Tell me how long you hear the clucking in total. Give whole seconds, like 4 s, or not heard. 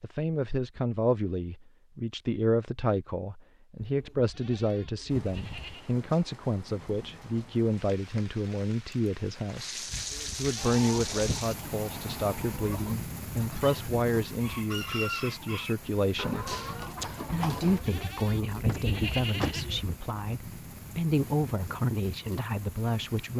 7 s.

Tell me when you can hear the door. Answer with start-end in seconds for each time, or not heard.
18.6-19.6.